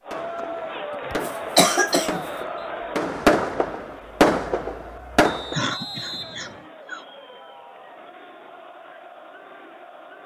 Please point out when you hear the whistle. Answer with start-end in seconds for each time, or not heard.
2.1-2.8, 5.2-6.7.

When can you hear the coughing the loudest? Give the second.
2 s.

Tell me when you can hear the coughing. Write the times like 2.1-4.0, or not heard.
1.1-2.2, 5.5-7.0.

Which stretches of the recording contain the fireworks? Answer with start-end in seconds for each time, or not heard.
0.1-5.6.